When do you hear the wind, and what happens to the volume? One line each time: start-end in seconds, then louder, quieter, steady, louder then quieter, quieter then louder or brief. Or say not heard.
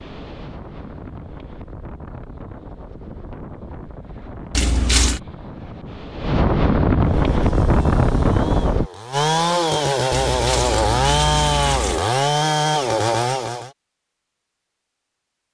0.0-8.9 louder.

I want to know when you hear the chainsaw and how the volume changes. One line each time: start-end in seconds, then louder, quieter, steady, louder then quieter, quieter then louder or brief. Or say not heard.
7.0-13.7 louder.